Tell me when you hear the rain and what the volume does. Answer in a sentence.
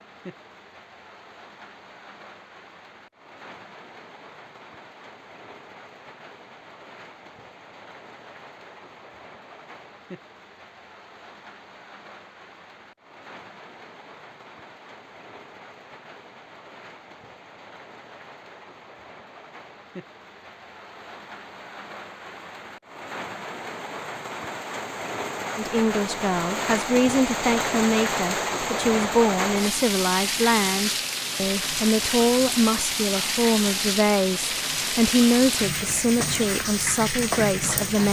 You can hear the rain from 0.0 to 38.0 s, getting louder.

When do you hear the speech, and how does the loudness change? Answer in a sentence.
The speech can be heard from 25.6 to 38.0 s, at a steady volume.